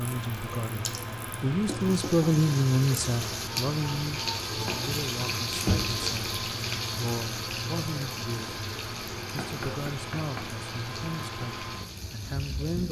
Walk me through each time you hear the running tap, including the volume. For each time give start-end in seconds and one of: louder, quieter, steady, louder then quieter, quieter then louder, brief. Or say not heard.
0.0-12.8 louder then quieter.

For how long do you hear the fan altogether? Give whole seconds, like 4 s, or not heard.
13 s.